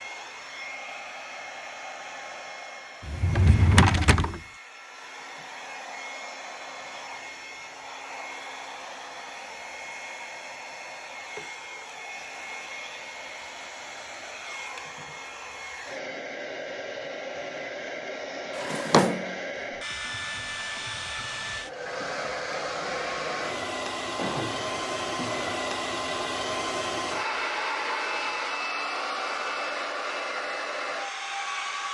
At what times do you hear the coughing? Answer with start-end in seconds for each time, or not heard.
not heard.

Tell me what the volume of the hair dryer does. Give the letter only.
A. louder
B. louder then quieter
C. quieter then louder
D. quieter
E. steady
A.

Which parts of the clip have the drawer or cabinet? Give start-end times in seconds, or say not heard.
3.0-4.4, 18.6-19.3, 24.1-25.5.